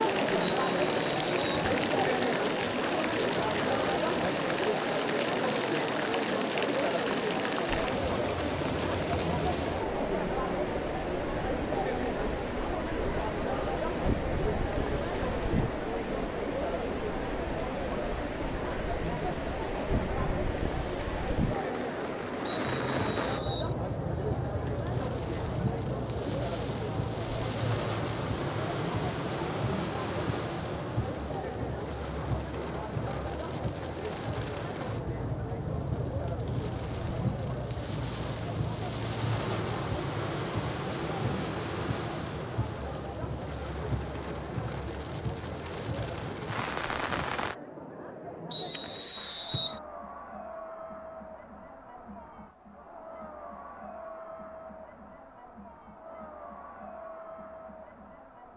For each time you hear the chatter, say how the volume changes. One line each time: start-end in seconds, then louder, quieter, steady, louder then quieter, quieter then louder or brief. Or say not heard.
0.0-58.5 quieter.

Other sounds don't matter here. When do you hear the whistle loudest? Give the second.
49 s.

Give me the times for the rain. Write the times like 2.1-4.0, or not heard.
0.0-47.5.